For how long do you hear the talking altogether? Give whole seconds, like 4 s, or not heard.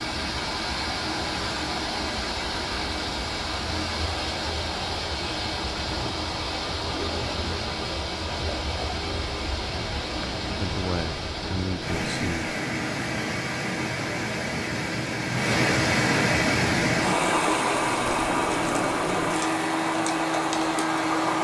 2 s.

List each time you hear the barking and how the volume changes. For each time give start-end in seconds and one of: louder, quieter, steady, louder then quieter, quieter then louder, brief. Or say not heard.
not heard.